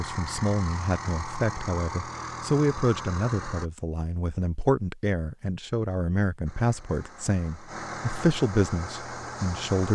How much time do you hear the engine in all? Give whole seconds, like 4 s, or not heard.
7 s.